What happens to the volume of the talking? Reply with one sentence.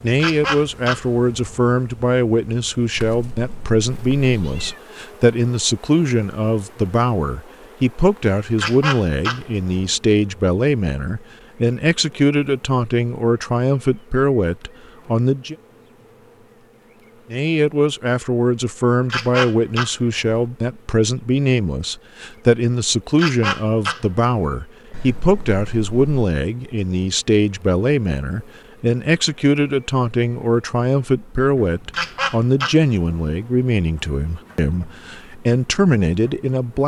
The loudness of the talking stays about the same.